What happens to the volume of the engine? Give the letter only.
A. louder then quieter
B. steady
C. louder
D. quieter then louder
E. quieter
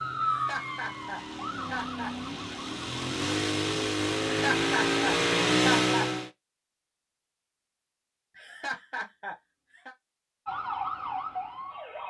C.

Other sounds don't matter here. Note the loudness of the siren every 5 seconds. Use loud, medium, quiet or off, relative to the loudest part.
loud, off, loud.